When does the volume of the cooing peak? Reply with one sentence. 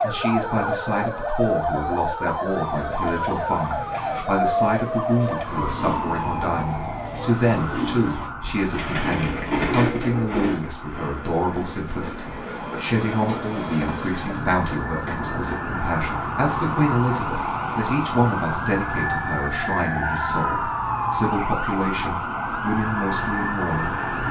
The loudest moment of the cooing is at 10 seconds.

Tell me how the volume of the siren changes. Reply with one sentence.
The volume of the siren goes down, then up.